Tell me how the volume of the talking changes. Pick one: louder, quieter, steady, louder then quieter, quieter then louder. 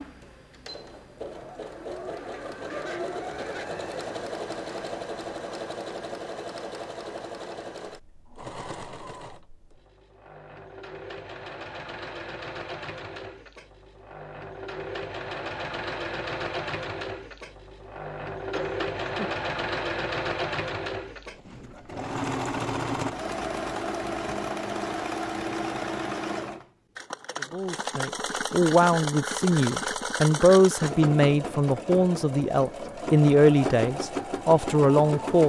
steady.